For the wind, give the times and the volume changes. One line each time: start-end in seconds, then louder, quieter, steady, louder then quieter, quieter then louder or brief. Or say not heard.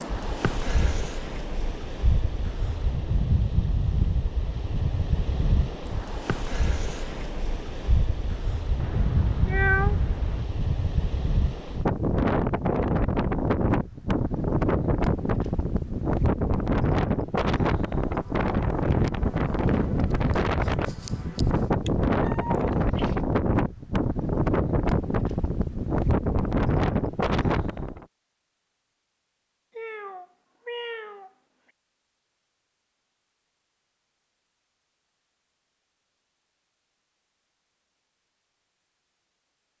0.0-28.1 louder.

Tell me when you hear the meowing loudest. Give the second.
10 s.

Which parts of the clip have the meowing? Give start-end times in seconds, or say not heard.
8.8-10.4, 21.9-23.2, 29.7-31.7.